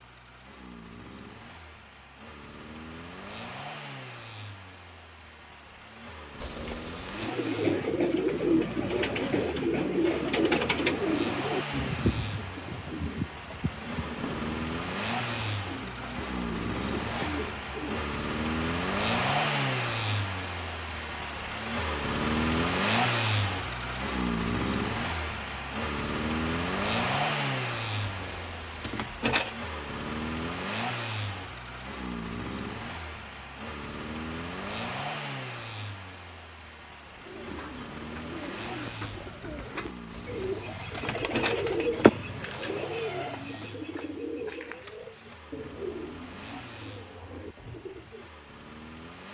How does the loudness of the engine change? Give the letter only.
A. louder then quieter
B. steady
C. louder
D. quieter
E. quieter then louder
A.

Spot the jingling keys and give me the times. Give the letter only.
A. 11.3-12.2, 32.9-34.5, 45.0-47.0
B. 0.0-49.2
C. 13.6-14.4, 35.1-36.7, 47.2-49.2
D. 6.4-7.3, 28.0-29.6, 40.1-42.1
D.